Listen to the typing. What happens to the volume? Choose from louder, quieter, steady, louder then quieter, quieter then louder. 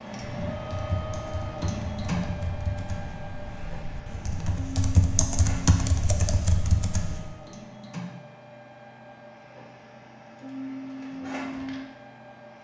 louder.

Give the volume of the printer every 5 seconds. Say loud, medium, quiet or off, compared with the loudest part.
loud, medium, loud.